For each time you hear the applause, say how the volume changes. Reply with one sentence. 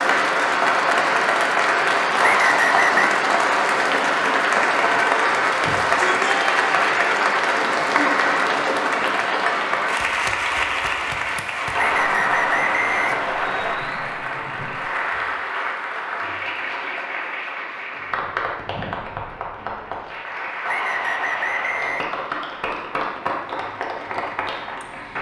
You can hear the applause from 0.0 to 25.1 s, getting quieter.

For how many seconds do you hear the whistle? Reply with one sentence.
You can hear the whistle for 4 seconds altogether.